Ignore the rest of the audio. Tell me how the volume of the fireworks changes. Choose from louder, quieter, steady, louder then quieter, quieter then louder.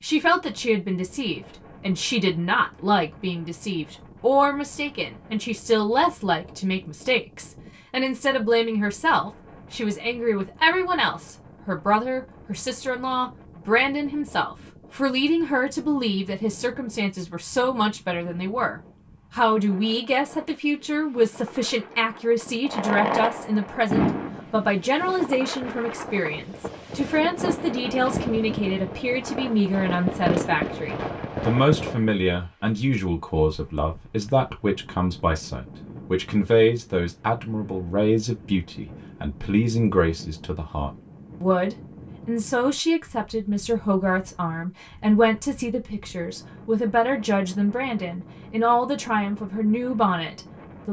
quieter then louder.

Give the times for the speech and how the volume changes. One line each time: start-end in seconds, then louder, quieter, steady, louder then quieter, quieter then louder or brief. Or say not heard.
0.0-50.8 steady.